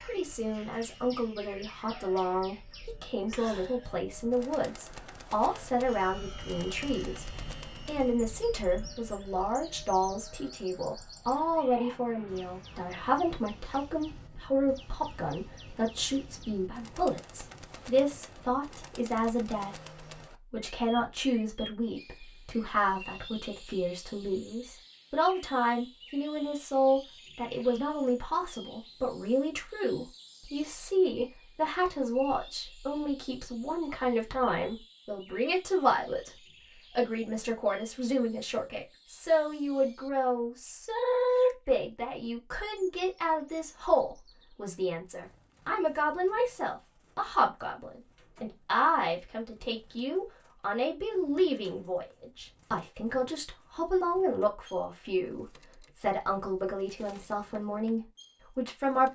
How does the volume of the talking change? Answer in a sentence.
The loudness of the talking stays about the same.